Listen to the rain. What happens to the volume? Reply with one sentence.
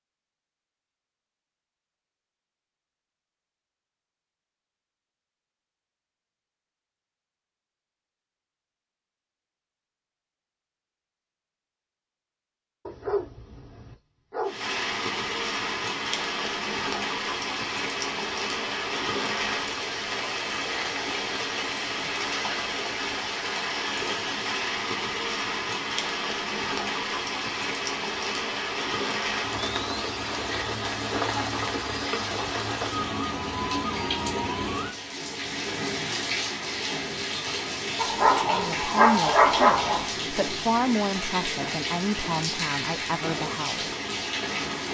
The volume of the rain stays about the same.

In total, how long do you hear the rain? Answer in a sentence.
You can hear the rain for 30 seconds altogether.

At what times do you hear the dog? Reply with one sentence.
The dog can be heard from 12.8 to 14.7 s and from 38.0 to 40.1 s.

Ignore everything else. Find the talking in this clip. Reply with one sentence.
The talking can be heard from 38.5 to 43.9 s.